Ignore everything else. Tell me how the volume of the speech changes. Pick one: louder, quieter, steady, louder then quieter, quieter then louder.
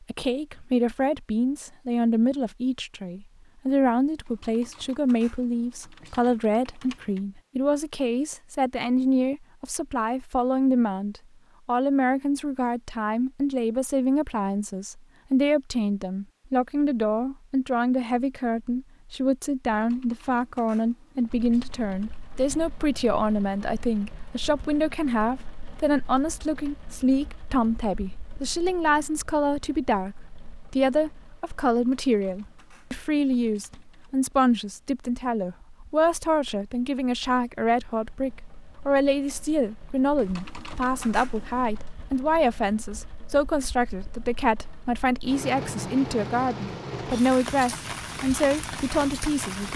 steady.